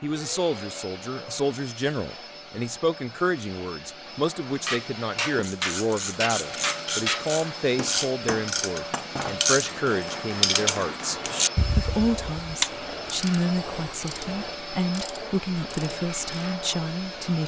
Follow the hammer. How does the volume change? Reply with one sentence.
The loudness of the hammer goes down.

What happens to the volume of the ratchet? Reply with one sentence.
The loudness of the ratchet goes up, then down.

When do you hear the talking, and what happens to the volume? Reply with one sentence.
You can hear the talking from 0.0 to 17.4 s, at a steady volume.